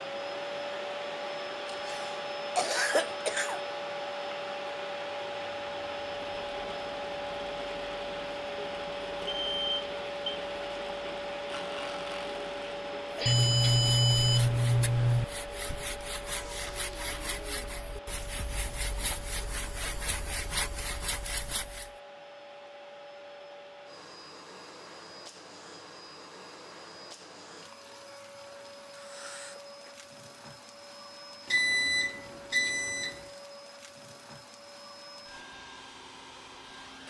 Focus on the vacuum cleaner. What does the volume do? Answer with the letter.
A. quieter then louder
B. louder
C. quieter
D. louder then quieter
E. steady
C.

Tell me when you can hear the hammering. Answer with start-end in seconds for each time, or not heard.
not heard.